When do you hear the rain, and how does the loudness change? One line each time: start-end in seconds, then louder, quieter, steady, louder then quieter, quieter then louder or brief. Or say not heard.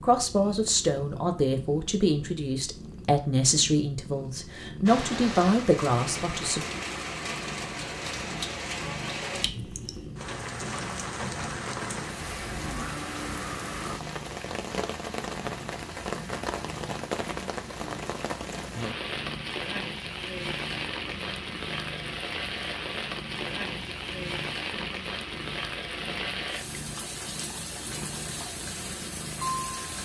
4.8-29.9 steady.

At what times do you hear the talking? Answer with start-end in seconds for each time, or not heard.
0.0-6.6.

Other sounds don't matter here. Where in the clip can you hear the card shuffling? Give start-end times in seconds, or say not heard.
not heard.